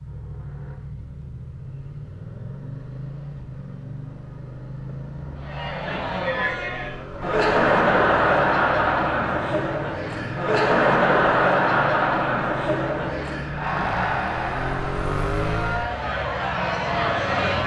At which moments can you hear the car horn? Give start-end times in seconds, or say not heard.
not heard.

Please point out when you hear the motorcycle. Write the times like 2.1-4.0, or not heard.
0.0-17.6.